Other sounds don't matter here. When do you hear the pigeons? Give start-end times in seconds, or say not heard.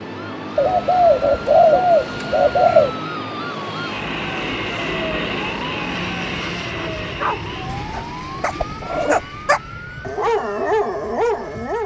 0.6-3.0, 7.8-9.6.